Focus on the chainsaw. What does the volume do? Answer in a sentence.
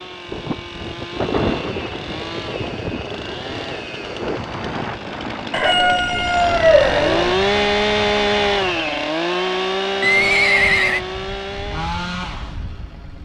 The volume of the chainsaw goes up, then down.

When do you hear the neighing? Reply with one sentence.
The neighing can be heard from 10.0 to 11.0 s.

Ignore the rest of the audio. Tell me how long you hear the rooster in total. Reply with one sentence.
The rooster can be heard for 2 seconds in total.